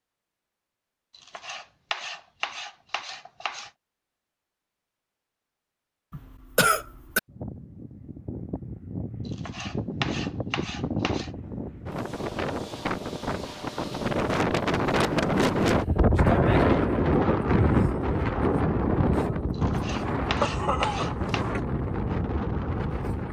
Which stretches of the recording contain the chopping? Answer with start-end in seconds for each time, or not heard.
1.1-3.7, 9.2-11.3, 19.5-21.4.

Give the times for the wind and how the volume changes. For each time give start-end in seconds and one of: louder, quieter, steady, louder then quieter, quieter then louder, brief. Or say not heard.
7.2-23.2 louder then quieter.